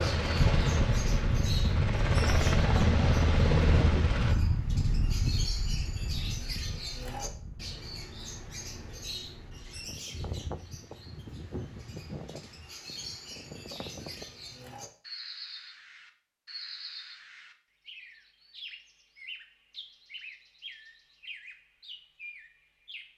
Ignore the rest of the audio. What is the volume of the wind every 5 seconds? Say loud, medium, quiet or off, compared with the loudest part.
loud, medium, quiet, off, off.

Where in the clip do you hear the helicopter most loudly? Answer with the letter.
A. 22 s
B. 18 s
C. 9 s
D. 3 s
D.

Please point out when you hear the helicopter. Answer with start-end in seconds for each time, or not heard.
0.0-4.3.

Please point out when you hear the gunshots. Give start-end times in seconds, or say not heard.
not heard.